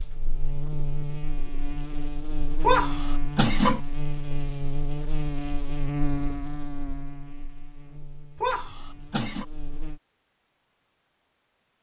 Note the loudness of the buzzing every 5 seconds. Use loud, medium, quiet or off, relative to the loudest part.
loud, loud, off.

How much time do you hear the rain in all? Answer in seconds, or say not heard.
not heard.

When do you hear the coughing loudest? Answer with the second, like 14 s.
3 s.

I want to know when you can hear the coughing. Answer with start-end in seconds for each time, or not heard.
2.6-3.8, 8.3-9.4.